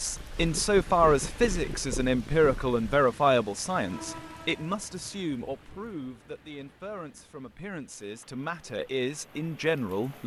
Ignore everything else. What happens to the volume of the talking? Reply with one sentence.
The volume of the talking goes down, then up.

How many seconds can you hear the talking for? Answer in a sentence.
You can hear the talking for 10 seconds altogether.